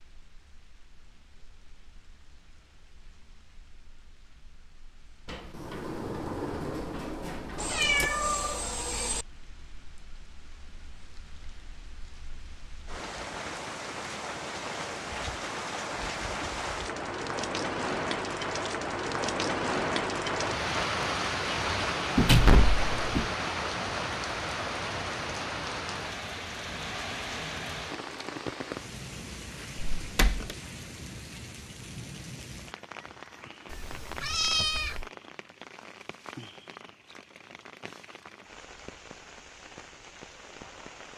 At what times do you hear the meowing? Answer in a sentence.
You can hear the meowing from 7.5 to 9.2 s and from 33.6 to 35.1 s.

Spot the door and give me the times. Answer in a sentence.
The door can be heard from 5.2 to 8.1 s, from 22.1 to 23.2 s and from 29.8 to 30.4 s.